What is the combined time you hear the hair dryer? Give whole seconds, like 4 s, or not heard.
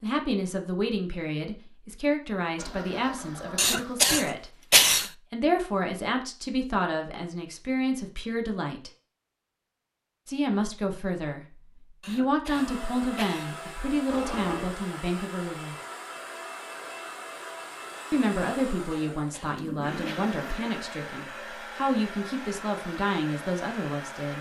12 s.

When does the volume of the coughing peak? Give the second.
5 s.